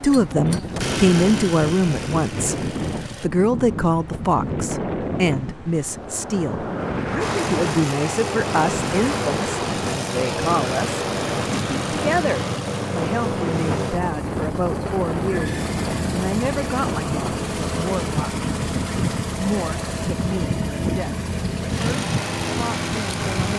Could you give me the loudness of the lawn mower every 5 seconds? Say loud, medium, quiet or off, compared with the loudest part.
medium, loud, loud, loud, loud.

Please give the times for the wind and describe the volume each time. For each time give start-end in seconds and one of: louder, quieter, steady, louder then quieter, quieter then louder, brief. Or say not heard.
0.0-23.5 steady.